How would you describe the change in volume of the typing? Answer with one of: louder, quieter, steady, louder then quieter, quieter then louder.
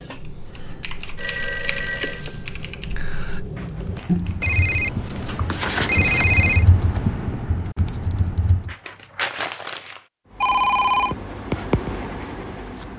louder.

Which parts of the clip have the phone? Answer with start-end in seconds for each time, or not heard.
1.1-2.8, 4.4-6.7, 10.4-11.2.